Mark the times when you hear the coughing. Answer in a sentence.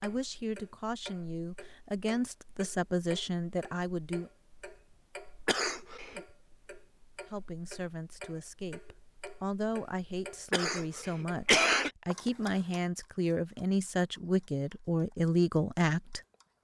You can hear the coughing from 5.5 to 6.2 s and from 10.5 to 11.9 s.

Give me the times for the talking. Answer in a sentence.
The talking can be heard from 0.0 to 4.3 s and from 7.3 to 16.2 s.